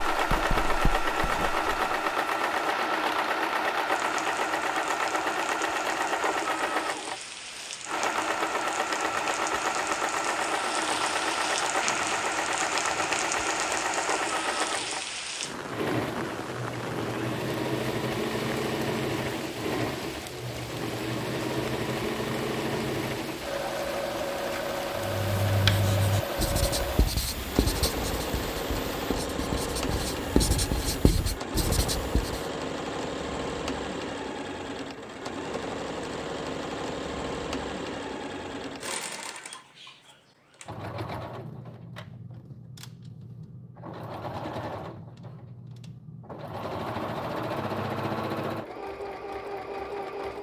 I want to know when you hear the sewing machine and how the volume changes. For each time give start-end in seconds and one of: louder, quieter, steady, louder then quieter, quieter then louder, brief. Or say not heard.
0.0-50.3 quieter.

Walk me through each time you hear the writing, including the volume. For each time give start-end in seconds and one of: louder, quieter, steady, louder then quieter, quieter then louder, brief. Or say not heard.
0.1-2.0 brief
24.9-32.5 quieter then louder.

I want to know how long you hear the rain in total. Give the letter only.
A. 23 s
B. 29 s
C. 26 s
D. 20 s
B.